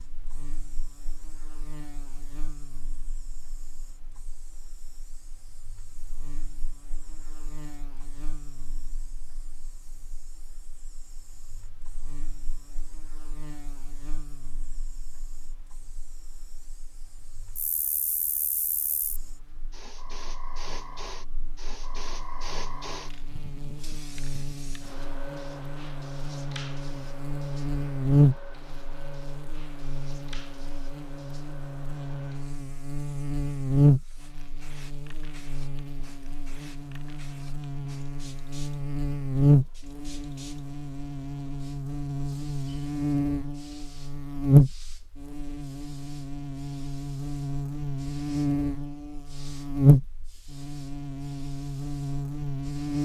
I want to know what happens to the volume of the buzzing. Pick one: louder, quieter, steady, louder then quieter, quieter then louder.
louder.